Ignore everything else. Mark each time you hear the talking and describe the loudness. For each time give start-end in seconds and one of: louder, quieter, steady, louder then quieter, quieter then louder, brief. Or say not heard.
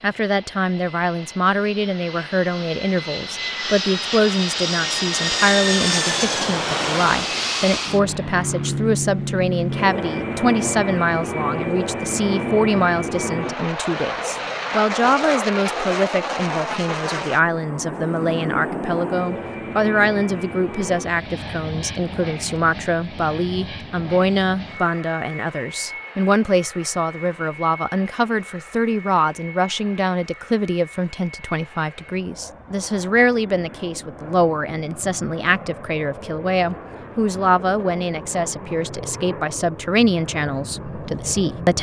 0.0-41.7 steady.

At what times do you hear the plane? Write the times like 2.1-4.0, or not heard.
0.0-41.7.